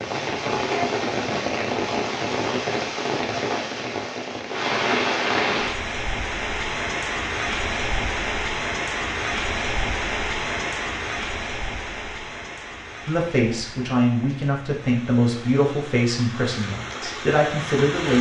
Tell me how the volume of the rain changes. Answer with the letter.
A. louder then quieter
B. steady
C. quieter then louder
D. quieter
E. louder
D.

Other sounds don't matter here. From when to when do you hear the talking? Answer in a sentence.
The talking can be heard from 13.1 to 18.1 s.